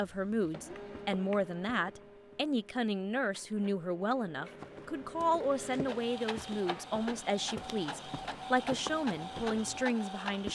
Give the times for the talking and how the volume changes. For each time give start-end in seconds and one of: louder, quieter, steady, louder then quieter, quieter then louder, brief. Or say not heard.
0.0-10.5 steady.